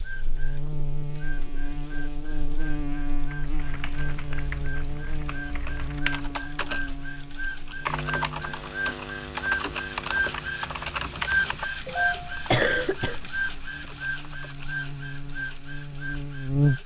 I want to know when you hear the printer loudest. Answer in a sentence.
The loudest moment of the printer is at 12 seconds.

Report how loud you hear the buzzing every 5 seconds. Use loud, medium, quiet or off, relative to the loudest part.
medium, medium, quiet, loud.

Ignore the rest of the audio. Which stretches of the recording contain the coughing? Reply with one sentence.
You can hear the coughing from 12.3 to 13.8 s.